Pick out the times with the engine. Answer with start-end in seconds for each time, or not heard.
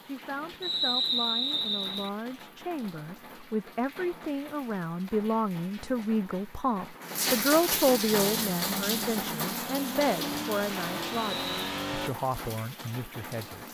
8.2-12.1.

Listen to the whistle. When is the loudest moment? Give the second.
1 s.